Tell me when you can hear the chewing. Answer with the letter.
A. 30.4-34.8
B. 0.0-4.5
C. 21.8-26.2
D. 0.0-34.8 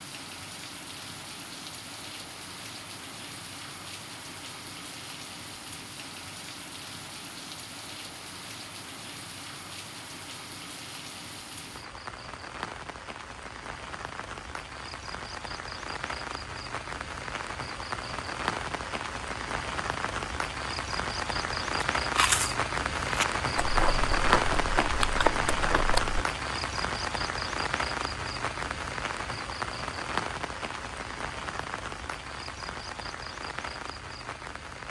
C.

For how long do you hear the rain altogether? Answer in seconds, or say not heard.
35 s.